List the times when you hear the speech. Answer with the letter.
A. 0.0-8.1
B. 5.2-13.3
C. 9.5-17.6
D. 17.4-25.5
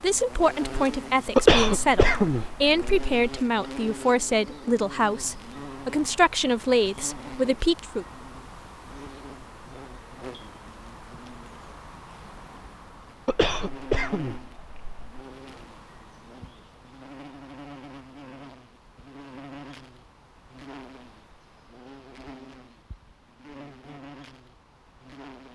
A.